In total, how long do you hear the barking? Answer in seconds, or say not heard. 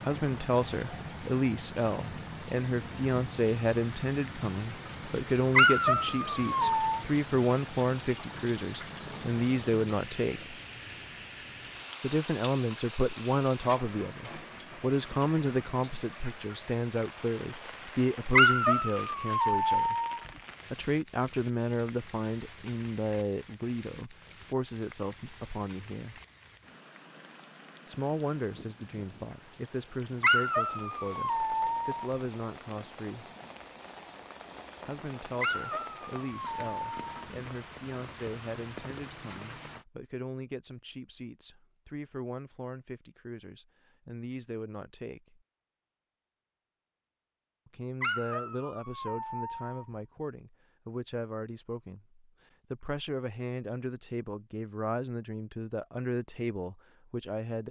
9 s.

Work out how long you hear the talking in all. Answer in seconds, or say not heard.
50 s.